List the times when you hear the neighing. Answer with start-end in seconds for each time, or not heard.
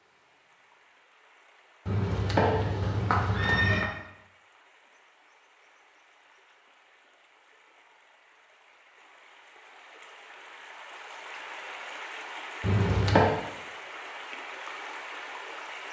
1.9-3.9, 12.6-13.3.